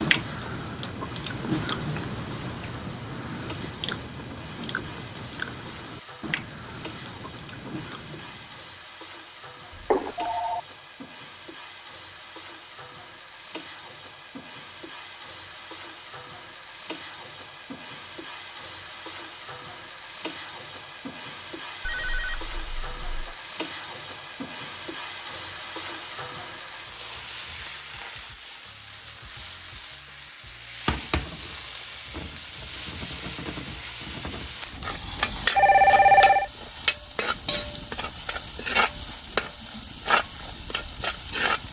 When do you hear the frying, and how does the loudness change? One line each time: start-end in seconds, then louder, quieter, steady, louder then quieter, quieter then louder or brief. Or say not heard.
0.0-41.6 louder.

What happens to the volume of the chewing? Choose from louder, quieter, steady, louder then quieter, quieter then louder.
quieter.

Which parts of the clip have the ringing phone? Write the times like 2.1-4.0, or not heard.
9.8-10.6, 21.9-23.4, 35.5-36.5.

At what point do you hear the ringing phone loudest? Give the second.
36 s.